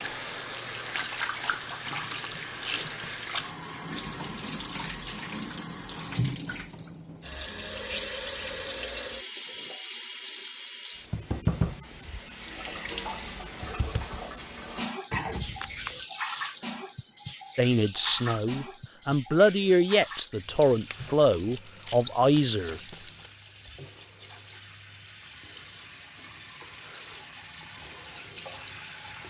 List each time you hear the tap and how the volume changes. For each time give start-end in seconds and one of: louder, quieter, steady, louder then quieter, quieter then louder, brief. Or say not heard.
0.0-29.2 quieter.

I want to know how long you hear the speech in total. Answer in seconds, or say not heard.
5 s.